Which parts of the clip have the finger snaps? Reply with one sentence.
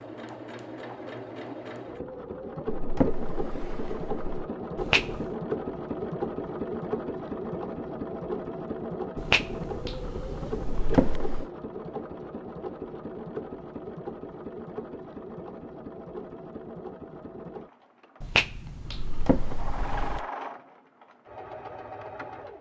The finger snaps can be heard from 4.8 to 5.3 s, from 9.2 to 11.2 s and from 18.2 to 20.2 s.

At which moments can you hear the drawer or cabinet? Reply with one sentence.
The drawer or cabinet can be heard from 2.8 to 4.5 s, from 10.8 to 11.4 s and from 19.1 to 20.2 s.